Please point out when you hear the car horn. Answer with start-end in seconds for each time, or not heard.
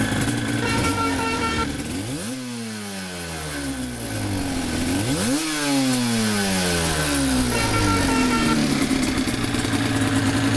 0.6-1.6, 7.5-8.6.